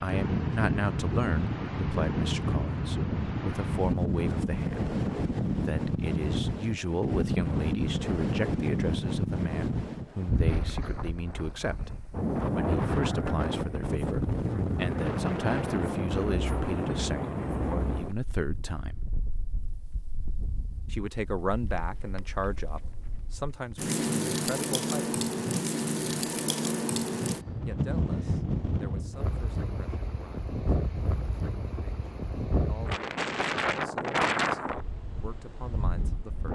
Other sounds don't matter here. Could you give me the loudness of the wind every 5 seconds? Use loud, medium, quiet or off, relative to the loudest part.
loud, loud, loud, loud, medium, loud, loud, medium.